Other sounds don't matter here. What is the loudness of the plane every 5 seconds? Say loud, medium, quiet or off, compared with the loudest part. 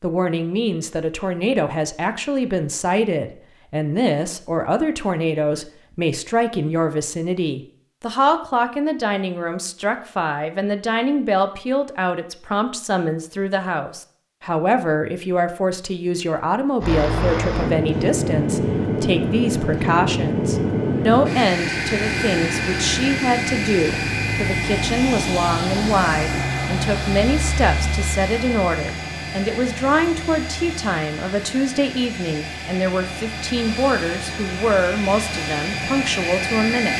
off, off, off, loud, loud, loud, medium, loud.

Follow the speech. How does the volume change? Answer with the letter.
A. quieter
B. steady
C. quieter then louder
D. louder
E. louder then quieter
B.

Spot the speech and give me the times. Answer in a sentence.
You can hear the speech from 0.0 to 36.9 s.